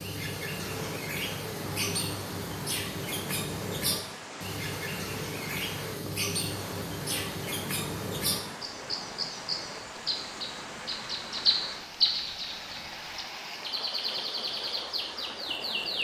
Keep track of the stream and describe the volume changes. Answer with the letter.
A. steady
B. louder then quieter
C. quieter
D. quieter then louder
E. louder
A.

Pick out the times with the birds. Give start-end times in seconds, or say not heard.
0.0-15.9.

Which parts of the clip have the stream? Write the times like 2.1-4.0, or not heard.
0.0-15.9.